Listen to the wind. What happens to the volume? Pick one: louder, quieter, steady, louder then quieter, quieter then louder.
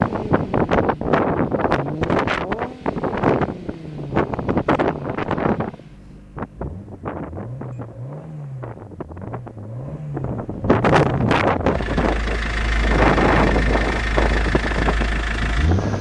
quieter then louder.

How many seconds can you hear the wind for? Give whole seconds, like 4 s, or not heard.
16 s.